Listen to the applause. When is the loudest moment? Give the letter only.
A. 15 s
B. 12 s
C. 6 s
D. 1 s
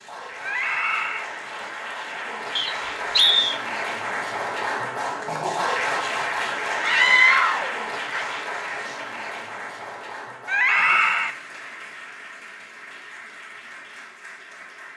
C.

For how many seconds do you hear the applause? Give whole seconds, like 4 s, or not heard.
15 s.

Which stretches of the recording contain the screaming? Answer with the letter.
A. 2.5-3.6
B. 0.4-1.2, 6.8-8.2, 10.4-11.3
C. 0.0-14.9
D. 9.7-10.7
B.